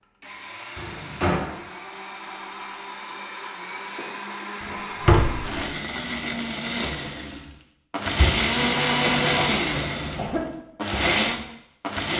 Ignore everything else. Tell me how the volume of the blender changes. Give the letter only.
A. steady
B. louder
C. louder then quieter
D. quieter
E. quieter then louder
B.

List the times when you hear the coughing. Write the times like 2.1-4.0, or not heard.
4.0-4.5, 9.0-10.5.